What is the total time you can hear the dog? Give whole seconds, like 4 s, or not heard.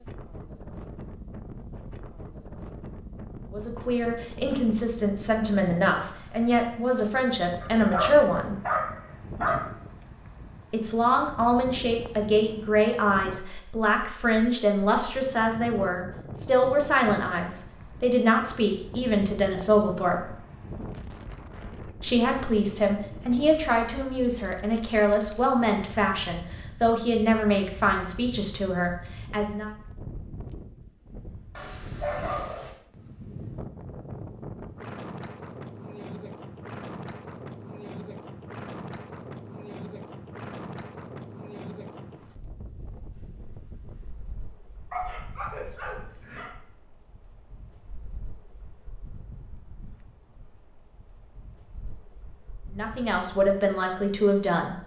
5 s.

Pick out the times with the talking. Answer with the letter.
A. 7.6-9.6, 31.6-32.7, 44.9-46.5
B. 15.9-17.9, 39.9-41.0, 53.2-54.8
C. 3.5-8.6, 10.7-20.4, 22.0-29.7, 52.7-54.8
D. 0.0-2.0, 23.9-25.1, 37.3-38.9
C.